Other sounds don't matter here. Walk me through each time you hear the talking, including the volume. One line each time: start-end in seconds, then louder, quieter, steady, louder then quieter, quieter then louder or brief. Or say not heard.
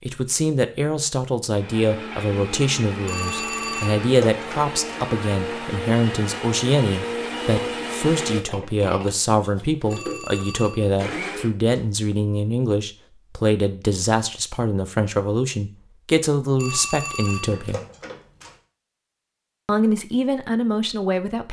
0.0-17.8 steady
19.6-21.4 brief.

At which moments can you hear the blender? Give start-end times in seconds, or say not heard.
1.5-11.5.